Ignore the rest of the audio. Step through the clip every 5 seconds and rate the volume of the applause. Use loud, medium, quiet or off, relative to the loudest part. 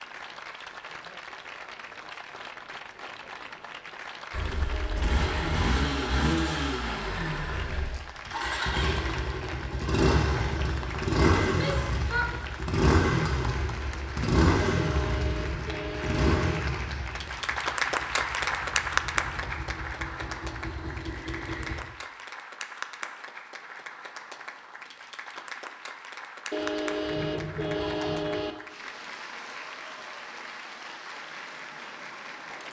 medium, medium, medium, loud, medium, medium, medium.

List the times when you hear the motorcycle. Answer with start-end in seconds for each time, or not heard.
4.3-21.8.